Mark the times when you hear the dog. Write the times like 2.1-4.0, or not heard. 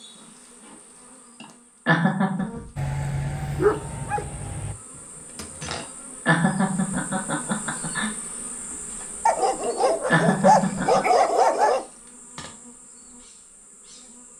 2.8-4.8, 9.2-11.8.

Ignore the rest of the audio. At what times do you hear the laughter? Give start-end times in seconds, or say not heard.
1.4-2.5, 5.8-8.1, 9.6-11.1.